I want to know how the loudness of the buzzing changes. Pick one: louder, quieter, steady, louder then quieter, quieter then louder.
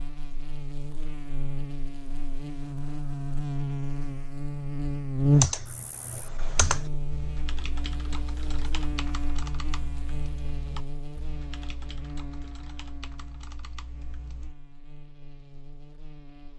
louder then quieter.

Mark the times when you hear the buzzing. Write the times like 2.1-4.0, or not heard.
0.0-16.5.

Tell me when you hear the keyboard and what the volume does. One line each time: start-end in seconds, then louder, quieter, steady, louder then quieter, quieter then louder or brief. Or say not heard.
5.3-14.6 quieter.